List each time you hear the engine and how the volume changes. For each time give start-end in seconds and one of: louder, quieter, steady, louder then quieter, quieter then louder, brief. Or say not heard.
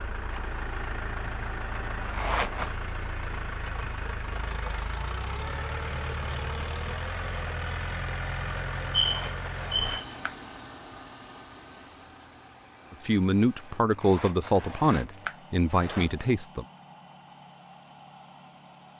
0.0-18.9 quieter.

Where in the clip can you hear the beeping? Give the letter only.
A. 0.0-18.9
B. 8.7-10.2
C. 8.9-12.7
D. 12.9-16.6
B.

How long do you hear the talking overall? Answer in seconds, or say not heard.
4 s.